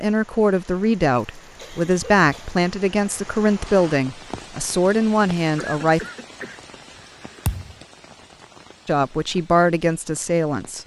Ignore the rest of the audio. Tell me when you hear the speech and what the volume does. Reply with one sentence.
You can hear the speech from 0.0 to 6.0 s, at a steady volume; and briefly from 8.8 to 10.8 s.